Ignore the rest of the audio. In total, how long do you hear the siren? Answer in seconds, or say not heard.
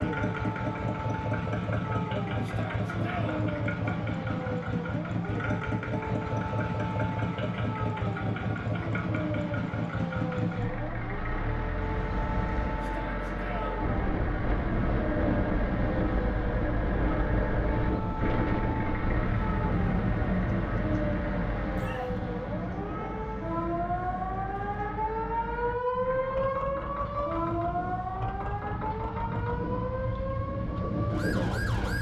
32 s.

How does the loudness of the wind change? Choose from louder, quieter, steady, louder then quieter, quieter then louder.
quieter then louder.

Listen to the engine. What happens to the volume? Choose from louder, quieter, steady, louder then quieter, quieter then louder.
quieter.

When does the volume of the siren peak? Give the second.
26 s.